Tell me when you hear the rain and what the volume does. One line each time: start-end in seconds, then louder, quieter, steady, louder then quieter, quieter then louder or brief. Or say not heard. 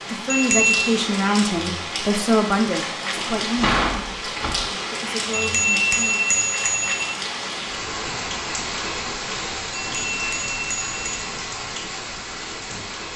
0.0-13.1 steady.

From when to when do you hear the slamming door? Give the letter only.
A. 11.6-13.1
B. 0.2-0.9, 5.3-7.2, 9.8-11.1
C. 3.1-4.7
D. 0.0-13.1
C.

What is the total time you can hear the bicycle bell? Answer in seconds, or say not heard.
4 s.